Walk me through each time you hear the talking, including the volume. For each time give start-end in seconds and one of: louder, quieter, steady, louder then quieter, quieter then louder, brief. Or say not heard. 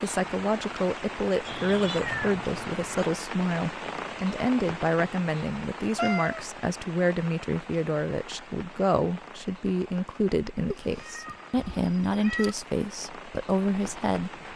0.0-14.3 steady.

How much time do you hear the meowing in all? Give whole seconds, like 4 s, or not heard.
4 s.